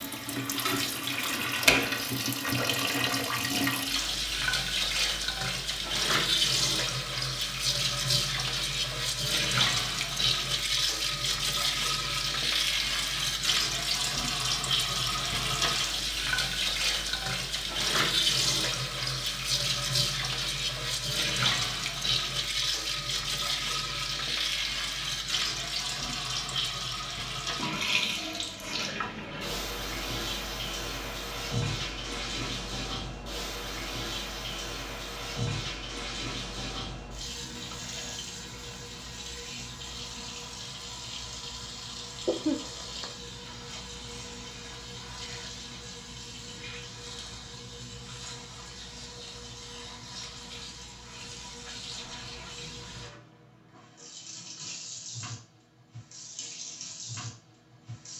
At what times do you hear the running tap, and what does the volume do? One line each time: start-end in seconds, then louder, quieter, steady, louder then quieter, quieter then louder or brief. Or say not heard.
0.0-58.1 quieter.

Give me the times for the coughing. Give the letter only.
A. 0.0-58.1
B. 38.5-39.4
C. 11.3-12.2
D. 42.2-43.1
D.